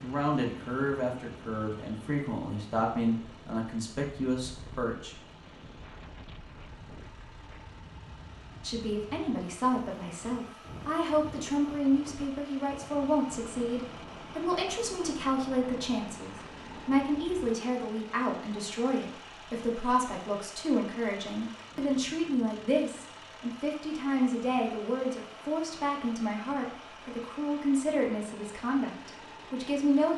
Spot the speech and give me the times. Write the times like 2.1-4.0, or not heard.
0.0-5.2, 8.6-30.1.